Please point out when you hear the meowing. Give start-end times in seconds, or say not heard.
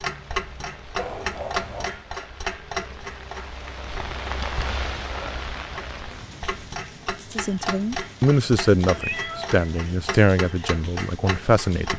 0.9-2.0, 8.9-9.9.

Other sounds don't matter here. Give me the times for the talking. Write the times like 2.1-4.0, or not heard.
7.3-11.9.